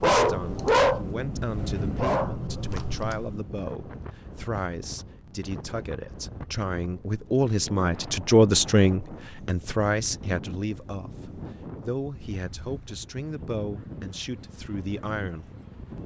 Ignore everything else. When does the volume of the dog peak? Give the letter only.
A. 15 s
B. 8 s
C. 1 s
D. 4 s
C.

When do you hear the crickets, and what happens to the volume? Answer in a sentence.
You can't hear the crickets here.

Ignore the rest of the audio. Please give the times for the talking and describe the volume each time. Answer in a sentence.
You can hear the talking from 0.0 to 15.5 s, getting louder then quieter.